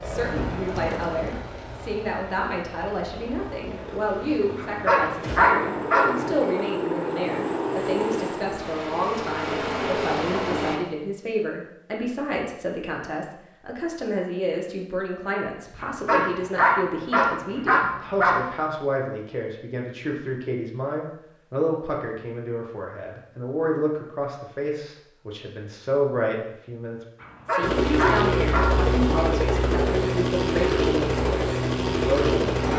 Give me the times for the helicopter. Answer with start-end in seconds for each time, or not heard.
0.0-10.8, 27.6-32.7.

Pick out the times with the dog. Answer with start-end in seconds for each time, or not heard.
4.5-6.0, 15.8-18.4, 27.2-28.6.